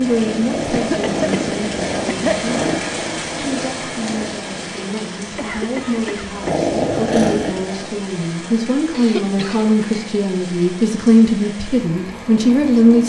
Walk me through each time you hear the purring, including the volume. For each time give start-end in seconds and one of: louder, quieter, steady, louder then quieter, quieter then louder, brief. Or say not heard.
0.0-4.4 quieter
6.4-8.1 brief.